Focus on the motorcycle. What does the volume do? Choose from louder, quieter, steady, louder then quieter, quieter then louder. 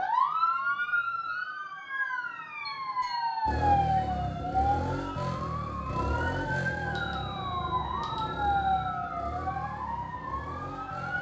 quieter.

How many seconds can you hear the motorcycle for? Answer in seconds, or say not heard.
8 s.